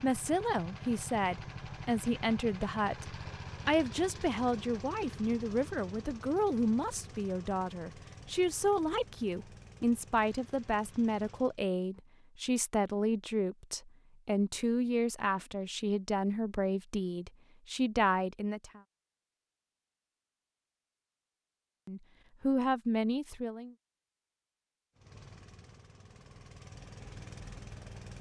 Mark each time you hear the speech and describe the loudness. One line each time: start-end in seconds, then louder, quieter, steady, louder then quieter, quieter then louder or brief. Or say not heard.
0.0-18.8 steady
21.9-23.8 brief.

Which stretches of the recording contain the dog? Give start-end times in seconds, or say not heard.
not heard.